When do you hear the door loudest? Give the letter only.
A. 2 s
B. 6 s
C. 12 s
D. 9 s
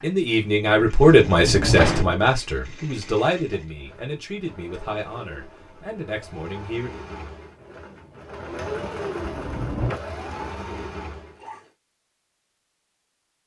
A.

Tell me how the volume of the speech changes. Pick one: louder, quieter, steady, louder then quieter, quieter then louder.
quieter.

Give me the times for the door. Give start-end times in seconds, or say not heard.
1.2-2.1, 9.2-10.0.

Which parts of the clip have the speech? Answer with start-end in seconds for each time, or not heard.
0.0-6.9.